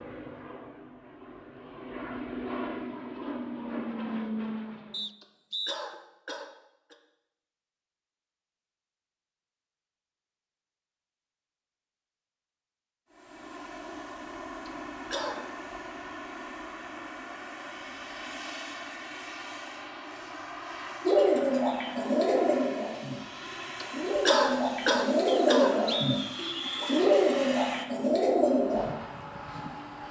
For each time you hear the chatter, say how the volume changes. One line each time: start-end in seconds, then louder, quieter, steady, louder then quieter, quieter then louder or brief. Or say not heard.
not heard.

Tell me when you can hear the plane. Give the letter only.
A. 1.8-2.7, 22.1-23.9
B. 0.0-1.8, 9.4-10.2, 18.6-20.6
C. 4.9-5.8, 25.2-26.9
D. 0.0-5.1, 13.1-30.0
D.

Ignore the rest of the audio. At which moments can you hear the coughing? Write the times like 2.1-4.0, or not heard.
5.2-7.0, 14.7-15.4, 23.8-25.9.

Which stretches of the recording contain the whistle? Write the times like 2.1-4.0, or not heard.
4.9-5.8, 25.2-26.9.